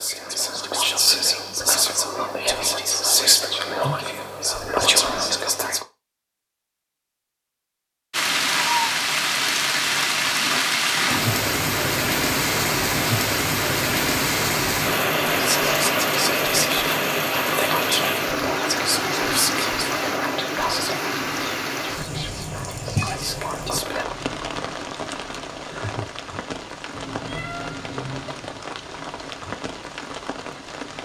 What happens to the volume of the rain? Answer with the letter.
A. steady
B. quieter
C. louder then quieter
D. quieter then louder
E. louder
B.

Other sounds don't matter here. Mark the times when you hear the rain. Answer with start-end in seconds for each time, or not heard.
8.1-30.9.